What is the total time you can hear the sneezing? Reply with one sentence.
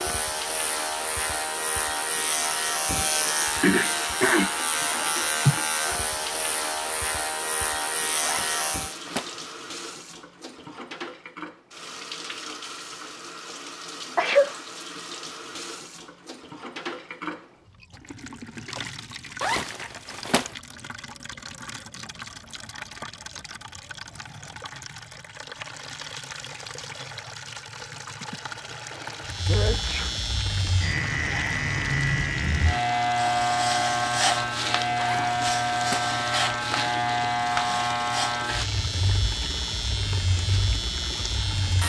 The sneezing can be heard for 4 seconds in total.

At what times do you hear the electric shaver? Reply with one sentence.
You can hear the electric shaver from 0.0 to 8.9 s and from 29.2 to 41.8 s.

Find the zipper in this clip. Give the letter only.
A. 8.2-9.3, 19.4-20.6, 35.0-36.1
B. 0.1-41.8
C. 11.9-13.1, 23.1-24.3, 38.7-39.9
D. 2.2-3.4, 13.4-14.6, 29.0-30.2
A.